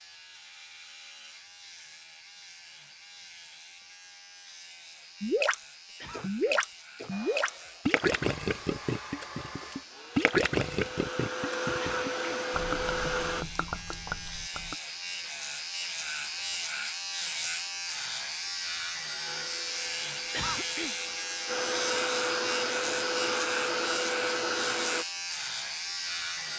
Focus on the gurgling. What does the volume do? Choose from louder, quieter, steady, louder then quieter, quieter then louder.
quieter.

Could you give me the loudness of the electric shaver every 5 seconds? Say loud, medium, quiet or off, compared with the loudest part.
quiet, quiet, medium, loud, loud, loud.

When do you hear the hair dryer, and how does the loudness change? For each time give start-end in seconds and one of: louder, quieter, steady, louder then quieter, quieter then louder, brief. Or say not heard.
7.1-13.4 louder
19.2-25.1 louder.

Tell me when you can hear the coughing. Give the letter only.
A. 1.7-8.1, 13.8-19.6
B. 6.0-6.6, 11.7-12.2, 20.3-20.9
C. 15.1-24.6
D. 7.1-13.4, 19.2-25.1
B.